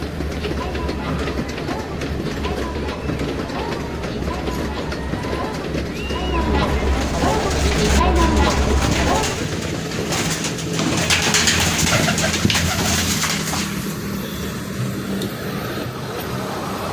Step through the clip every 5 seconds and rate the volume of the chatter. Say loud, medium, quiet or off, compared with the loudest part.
medium, loud, off, off.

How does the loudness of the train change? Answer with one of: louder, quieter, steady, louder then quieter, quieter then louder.
steady.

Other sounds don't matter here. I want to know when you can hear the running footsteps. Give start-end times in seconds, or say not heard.
not heard.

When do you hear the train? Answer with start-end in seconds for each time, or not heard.
0.0-16.8.